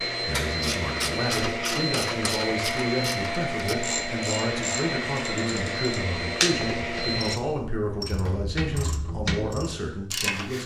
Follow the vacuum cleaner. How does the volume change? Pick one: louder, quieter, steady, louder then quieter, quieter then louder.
steady.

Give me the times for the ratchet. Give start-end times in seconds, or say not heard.
0.3-10.6.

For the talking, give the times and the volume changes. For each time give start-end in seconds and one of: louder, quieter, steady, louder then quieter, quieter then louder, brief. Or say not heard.
0.2-10.6 steady.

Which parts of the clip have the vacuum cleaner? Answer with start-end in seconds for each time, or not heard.
0.0-7.4.